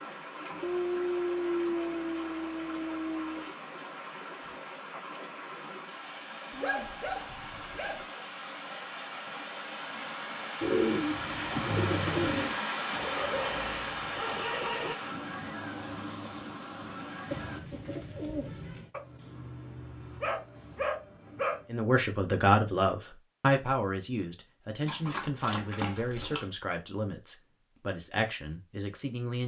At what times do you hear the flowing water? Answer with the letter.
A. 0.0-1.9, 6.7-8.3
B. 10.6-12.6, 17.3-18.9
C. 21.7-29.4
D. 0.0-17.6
D.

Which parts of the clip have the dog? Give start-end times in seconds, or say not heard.
0.6-3.5, 6.5-8.1, 12.9-14.9, 18.9-21.6, 24.9-26.4.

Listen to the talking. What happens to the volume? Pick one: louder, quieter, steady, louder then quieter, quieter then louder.
quieter.